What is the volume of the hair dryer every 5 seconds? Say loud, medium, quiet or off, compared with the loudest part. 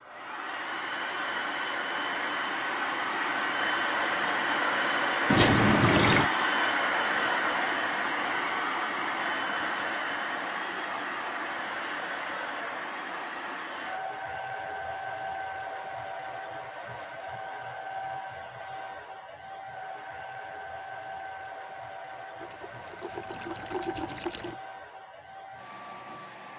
loud, loud, medium, medium, quiet, quiet.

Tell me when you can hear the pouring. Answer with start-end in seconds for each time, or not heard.
5.2-6.3, 22.4-24.6.